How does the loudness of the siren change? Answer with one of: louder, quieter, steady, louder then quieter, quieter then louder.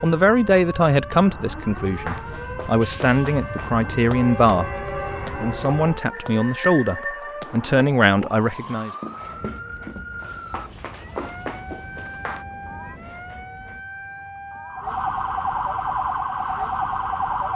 louder.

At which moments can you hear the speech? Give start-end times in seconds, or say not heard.
0.0-4.7, 5.4-8.9.